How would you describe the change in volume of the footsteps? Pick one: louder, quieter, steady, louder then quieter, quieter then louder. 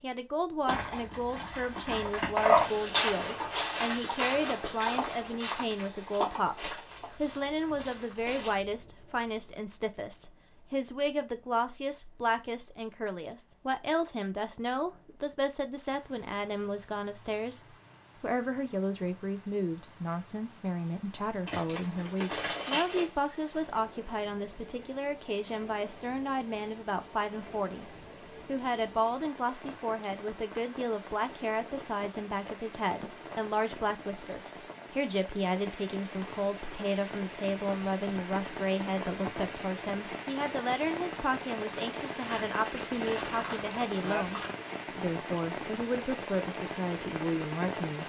quieter.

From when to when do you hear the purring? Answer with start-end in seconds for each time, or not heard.
not heard.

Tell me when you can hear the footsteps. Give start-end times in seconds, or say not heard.
2.5-8.6.